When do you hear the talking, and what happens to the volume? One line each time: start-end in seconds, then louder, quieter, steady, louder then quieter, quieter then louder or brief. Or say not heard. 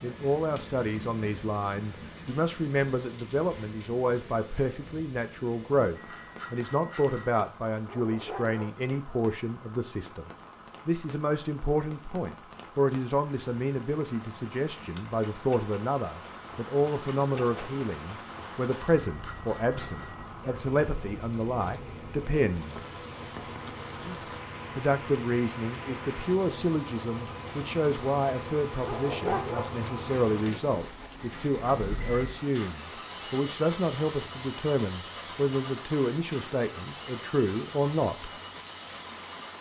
0.0-22.8 steady
24.8-38.3 steady.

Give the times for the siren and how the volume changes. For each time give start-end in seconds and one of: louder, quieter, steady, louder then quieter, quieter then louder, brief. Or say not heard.
not heard.